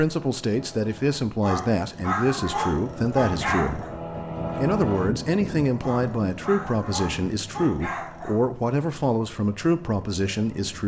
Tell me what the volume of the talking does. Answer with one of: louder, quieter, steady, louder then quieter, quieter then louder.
steady.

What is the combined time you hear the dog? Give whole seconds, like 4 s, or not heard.
5 s.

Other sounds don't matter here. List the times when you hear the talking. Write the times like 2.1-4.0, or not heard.
0.0-3.9, 4.5-10.8.